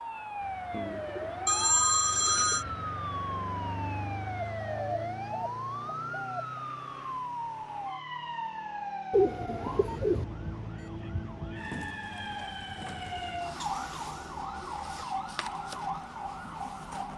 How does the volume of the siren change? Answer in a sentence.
The loudness of the siren stays about the same.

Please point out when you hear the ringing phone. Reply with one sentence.
You can hear the ringing phone from 1.4 to 2.6 s.